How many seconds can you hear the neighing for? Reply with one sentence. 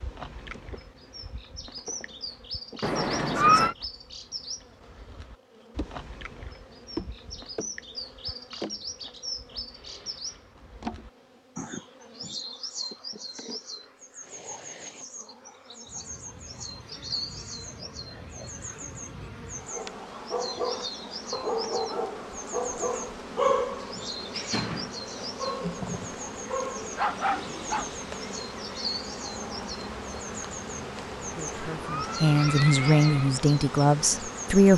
You can hear the neighing for 3 seconds altogether.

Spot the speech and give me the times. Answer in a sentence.
The speech can be heard from 30.6 to 34.7 s.